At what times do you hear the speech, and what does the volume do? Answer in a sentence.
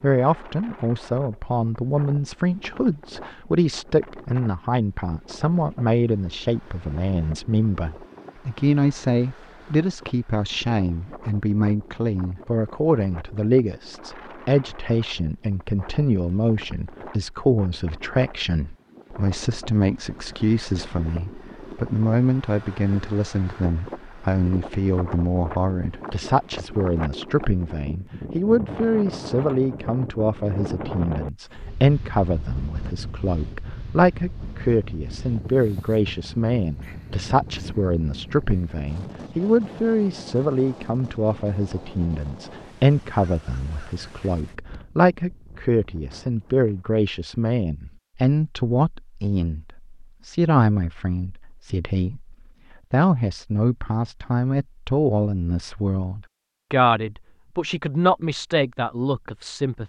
The speech can be heard from 0.0 to 59.8 s, at a steady volume.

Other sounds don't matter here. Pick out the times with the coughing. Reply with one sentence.
You can't hear the coughing here.